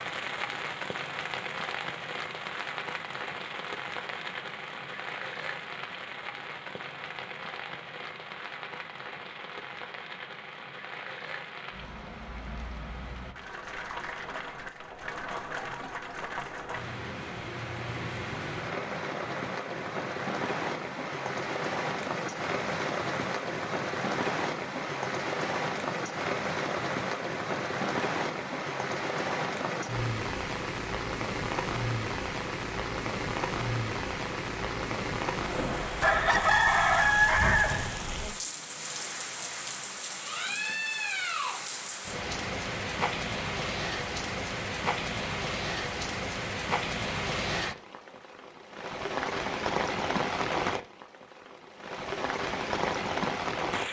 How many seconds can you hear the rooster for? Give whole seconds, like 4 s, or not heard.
2 s.